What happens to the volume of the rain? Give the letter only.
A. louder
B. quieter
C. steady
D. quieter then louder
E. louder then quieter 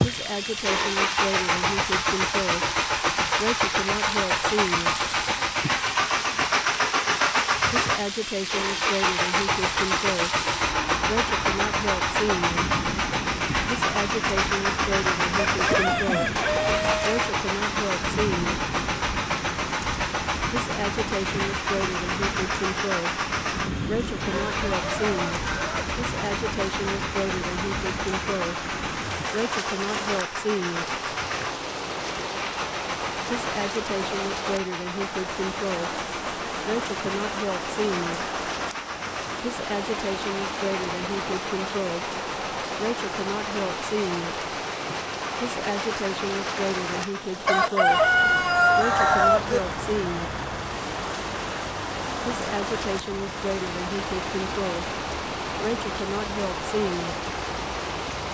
C.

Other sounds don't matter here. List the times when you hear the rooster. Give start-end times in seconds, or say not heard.
15.3-17.2, 24.2-25.8, 47.5-49.6.